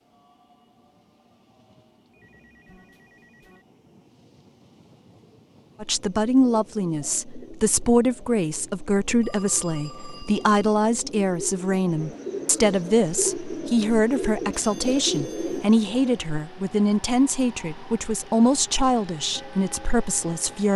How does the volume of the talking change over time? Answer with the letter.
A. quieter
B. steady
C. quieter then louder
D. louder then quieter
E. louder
B.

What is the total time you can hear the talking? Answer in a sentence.
You can hear the talking for 15 seconds altogether.